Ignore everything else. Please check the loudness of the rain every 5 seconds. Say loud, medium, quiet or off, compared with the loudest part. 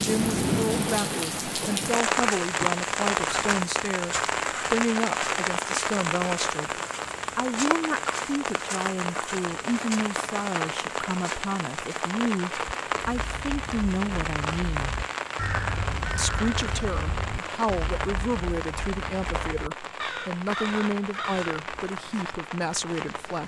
loud, loud, medium, medium, medium.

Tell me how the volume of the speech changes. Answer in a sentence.
The loudness of the speech stays about the same.